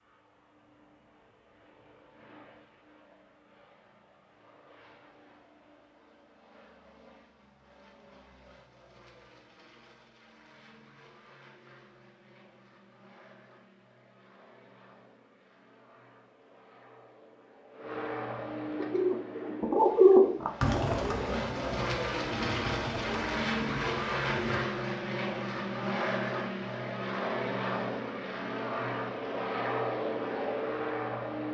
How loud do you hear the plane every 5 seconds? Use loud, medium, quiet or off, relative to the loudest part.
quiet, quiet, quiet, medium, loud, loud, loud.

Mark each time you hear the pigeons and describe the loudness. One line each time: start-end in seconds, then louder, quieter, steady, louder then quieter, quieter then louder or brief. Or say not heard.
18.8-24.6 quieter.